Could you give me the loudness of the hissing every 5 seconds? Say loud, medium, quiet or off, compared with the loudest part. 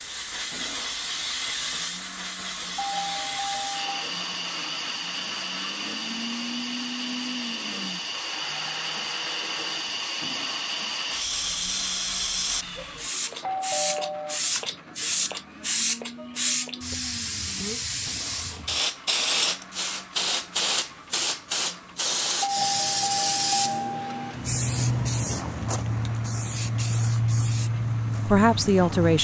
medium, medium, loud, loud, loud, loud.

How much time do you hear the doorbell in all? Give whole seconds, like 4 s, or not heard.
4 s.